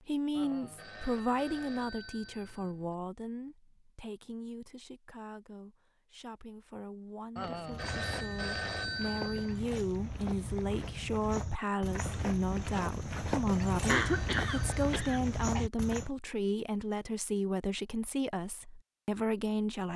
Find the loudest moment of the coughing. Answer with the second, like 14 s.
14 s.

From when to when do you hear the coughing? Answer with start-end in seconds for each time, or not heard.
13.8-15.7.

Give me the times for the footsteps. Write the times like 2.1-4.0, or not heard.
7.7-16.1.